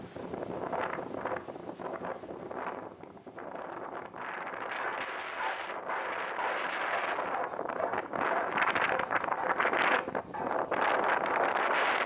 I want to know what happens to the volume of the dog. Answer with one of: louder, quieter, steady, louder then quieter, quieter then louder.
steady.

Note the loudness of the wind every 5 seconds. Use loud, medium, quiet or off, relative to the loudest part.
medium, loud, loud.